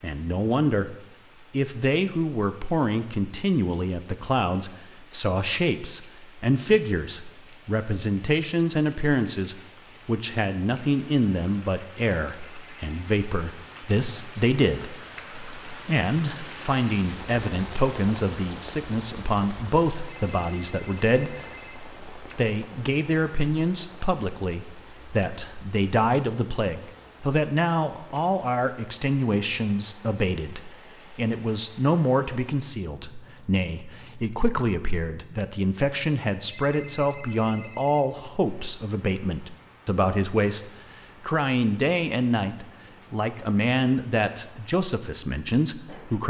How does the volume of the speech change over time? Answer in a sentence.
The loudness of the speech stays about the same.